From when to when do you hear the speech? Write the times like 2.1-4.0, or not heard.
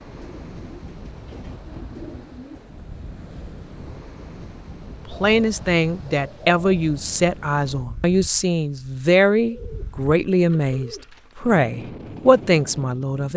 5.0-13.3.